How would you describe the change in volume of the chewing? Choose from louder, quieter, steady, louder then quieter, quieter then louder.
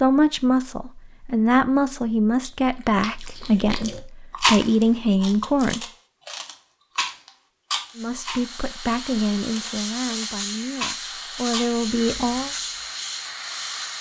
louder then quieter.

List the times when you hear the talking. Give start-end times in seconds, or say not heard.
0.0-5.8, 8.0-12.6.